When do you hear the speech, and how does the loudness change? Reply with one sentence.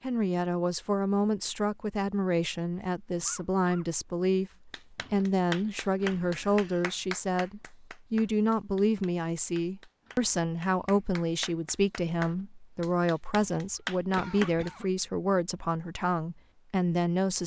The speech can be heard from 0.0 to 17.4 s, at a steady volume.